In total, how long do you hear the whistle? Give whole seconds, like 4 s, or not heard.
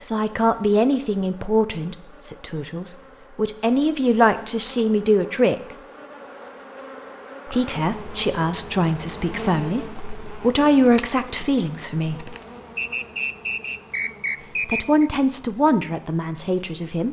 2 s.